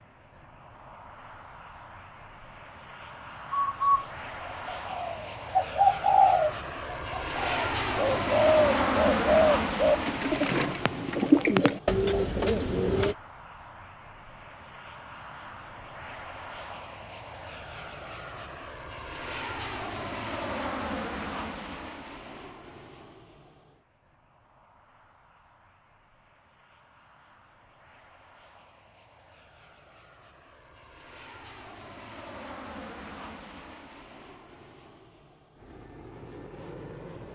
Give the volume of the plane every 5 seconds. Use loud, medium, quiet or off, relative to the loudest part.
quiet, loud, medium, medium, medium, quiet, quiet, quiet.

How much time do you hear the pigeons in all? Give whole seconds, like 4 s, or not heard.
10 s.